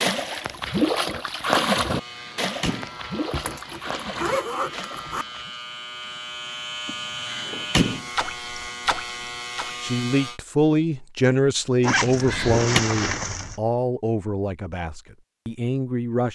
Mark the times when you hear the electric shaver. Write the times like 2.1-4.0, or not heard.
1.9-10.4.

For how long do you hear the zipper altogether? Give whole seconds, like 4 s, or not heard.
4 s.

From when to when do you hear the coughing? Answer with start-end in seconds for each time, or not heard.
not heard.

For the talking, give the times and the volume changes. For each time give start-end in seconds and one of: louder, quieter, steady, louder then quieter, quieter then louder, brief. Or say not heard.
9.8-16.3 quieter.